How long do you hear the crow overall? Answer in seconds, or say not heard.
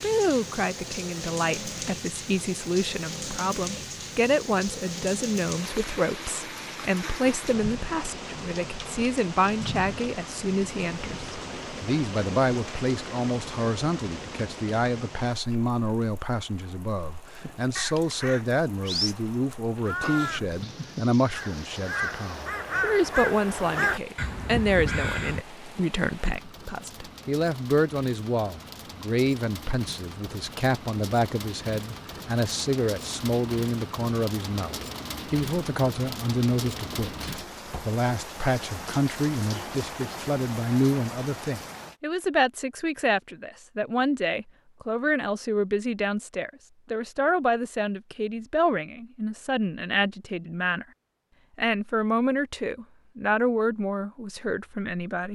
8 s.